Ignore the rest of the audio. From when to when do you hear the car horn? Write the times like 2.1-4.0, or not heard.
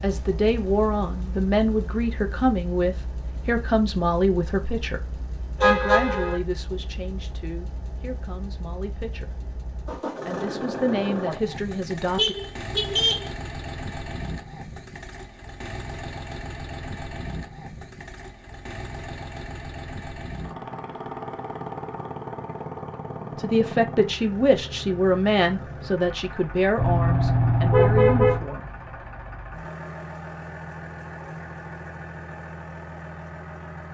5.6-6.4, 12.2-13.3, 26.8-28.4.